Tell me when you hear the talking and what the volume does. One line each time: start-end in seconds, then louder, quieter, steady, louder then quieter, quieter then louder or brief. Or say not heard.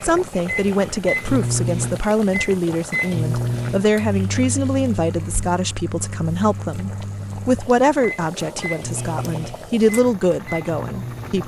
0.0-11.4 steady.